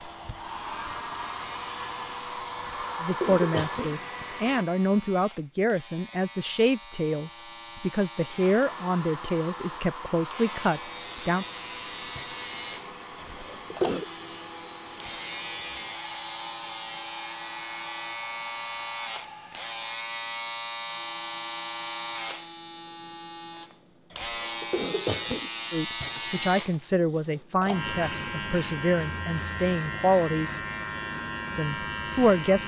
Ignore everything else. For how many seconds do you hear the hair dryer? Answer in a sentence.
The hair dryer can be heard for 16 seconds in total.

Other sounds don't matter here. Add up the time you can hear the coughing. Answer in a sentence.
You can hear the coughing for 4 seconds altogether.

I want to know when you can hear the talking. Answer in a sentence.
You can hear the talking from 3.0 to 11.4 s, from 25.7 to 30.6 s and from 31.6 to 32.6 s.